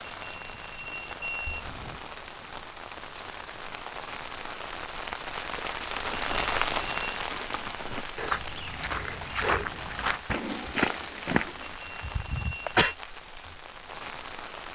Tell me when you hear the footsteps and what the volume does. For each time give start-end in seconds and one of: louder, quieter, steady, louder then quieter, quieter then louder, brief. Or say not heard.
5.5-11.8 louder.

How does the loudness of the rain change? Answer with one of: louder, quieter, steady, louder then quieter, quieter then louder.
louder then quieter.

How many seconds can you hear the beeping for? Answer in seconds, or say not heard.
4 s.